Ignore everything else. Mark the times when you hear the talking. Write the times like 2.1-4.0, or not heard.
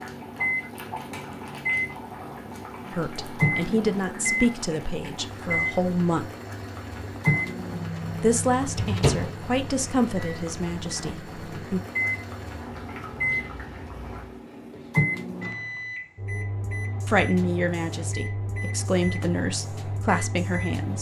2.9-6.3, 8.2-11.8, 17.1-20.9.